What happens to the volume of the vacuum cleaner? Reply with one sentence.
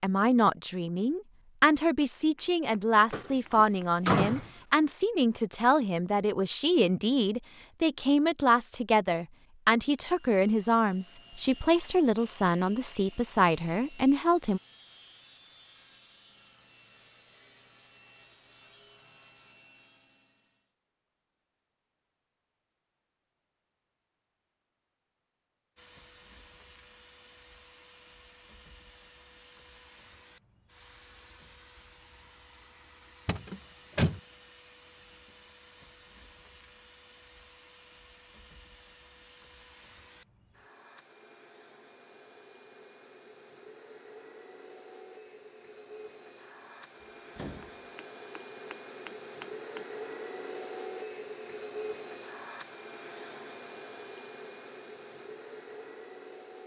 The loudness of the vacuum cleaner goes up.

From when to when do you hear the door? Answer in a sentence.
You can hear the door from 3.1 to 4.5 s, from 33.2 to 34.2 s and from 47.0 to 47.8 s.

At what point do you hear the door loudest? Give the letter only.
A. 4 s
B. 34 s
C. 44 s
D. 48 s
A.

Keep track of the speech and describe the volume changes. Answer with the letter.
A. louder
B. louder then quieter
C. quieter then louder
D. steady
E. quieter
D.